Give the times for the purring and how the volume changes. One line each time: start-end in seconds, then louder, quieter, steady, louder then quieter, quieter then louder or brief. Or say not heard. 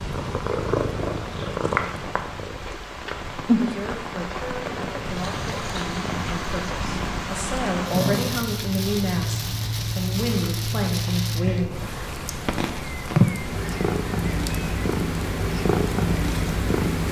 0.0-17.0 quieter then louder.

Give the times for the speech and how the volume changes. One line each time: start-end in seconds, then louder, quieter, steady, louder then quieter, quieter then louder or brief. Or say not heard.
3.6-11.8 louder.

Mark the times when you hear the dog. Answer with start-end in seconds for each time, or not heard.
not heard.